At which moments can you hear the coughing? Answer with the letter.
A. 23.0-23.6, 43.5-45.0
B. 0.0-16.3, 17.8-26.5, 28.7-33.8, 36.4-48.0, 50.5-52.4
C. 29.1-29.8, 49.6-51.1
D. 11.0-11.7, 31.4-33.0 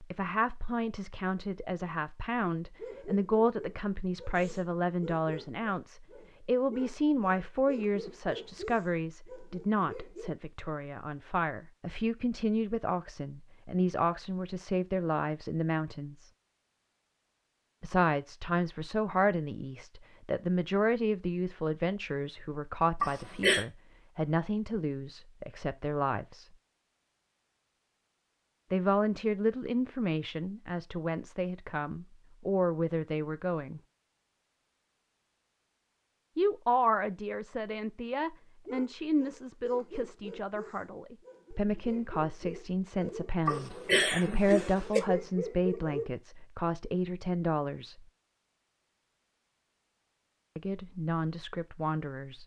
A.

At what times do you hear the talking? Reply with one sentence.
The talking can be heard from 0.0 to 16.3 s, from 17.8 to 26.5 s, from 28.7 to 33.8 s, from 36.4 to 48.0 s and from 50.5 to 52.4 s.